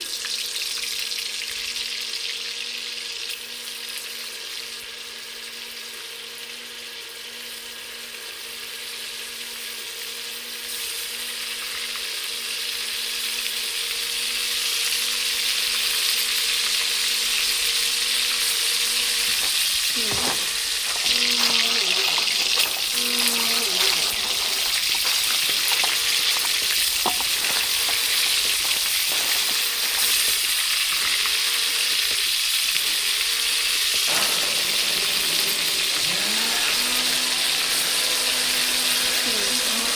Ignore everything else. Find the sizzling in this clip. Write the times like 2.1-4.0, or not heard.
0.0-39.9.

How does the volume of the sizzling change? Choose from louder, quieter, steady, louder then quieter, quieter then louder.
louder.